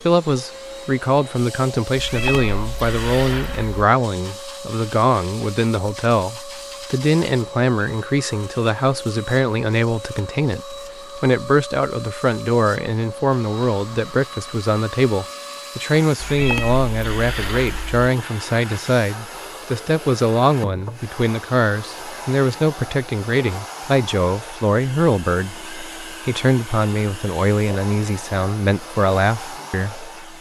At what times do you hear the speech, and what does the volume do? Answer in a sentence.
You can hear the speech from 0.1 to 30.3 s, at a steady volume.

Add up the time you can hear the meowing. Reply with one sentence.
You can hear the meowing for 4 seconds altogether.